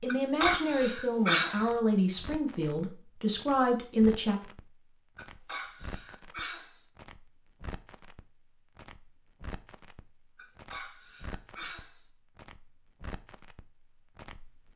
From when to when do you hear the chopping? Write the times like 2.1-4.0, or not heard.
not heard.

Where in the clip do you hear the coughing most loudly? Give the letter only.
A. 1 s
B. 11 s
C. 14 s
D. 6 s
A.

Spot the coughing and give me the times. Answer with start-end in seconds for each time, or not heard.
0.1-1.7, 5.2-6.8, 10.3-12.0.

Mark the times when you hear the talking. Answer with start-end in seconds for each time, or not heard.
0.0-4.4.